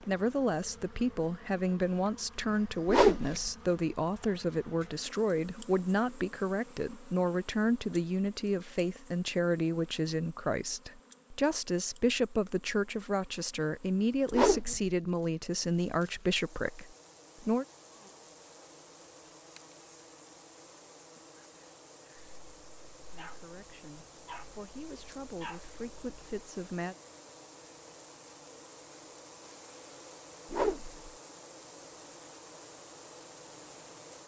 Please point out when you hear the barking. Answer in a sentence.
You can hear the barking from 22.1 to 26.4 s.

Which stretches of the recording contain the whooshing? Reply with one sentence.
You can hear the whooshing from 2.9 to 3.4 s, from 14.3 to 14.8 s and from 30.5 to 31.0 s.